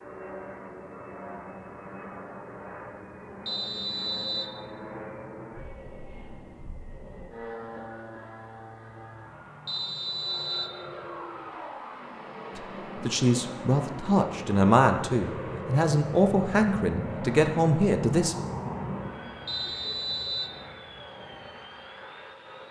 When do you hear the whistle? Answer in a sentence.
You can hear the whistle from 3.5 to 4.5 s, from 9.7 to 10.8 s and from 19.4 to 20.6 s.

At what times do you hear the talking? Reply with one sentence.
The talking can be heard from 12.6 to 18.4 s.